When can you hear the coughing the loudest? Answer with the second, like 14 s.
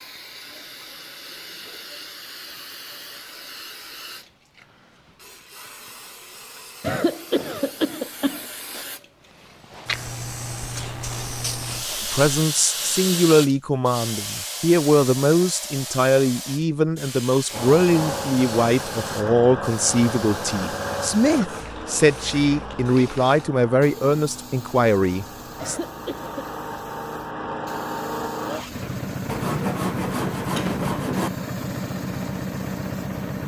7 s.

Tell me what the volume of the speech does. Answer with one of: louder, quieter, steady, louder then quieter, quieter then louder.
steady.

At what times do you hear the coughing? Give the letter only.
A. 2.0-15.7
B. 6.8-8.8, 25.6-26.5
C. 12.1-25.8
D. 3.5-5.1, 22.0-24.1
B.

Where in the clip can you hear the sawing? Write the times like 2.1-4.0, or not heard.
10.8-12.3, 29.2-31.3.